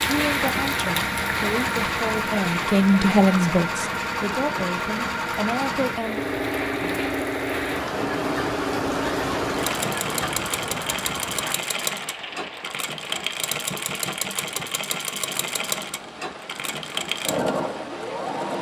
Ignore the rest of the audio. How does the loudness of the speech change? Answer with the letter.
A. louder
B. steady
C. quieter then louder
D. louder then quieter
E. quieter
D.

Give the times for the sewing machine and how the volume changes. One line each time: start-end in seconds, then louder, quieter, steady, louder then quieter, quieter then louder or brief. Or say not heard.
0.0-18.5 steady.